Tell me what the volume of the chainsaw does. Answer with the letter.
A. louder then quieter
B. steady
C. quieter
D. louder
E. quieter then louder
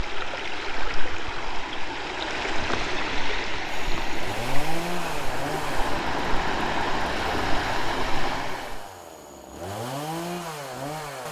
E.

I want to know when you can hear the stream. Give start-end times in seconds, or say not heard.
0.0-8.8.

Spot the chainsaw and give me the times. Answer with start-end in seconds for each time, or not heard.
3.6-11.2.